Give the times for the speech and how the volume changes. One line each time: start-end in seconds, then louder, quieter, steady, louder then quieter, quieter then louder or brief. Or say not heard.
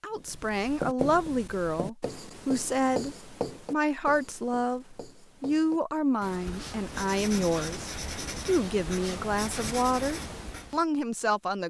0.0-11.6 steady.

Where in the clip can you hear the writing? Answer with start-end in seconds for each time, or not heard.
0.1-10.8.